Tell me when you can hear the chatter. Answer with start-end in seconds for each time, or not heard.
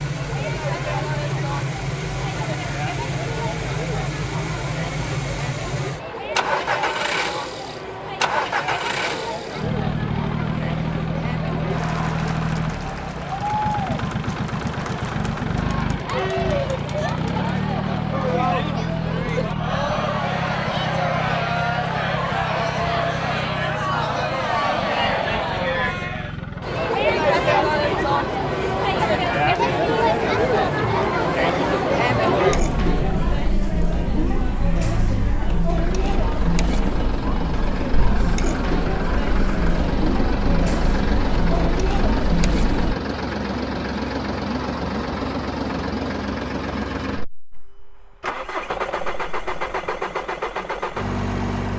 0.0-43.0.